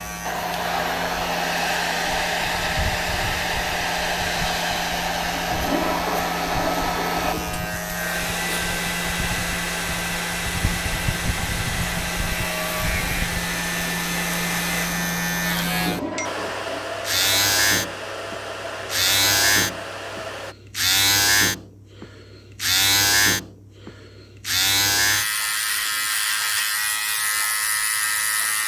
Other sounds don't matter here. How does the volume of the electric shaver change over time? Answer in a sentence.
The loudness of the electric shaver goes up.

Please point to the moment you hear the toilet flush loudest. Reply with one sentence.
The volume of the toilet flush peaks at 6 seconds.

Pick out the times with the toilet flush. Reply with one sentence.
You can hear the toilet flush from 5.5 to 7.8 s and from 15.8 to 16.9 s.